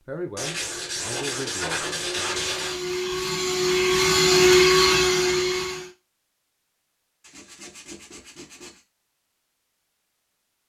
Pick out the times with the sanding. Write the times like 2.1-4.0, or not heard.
0.3-2.8, 7.2-8.8.